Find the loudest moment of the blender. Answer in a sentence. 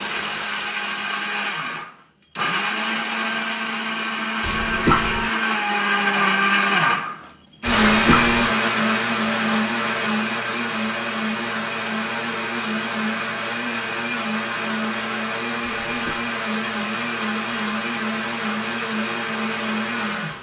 The loudest moment of the blender is at 8 seconds.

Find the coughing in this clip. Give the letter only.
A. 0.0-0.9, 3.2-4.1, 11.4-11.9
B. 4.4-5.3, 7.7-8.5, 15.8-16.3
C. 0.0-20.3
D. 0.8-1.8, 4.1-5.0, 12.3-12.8
B.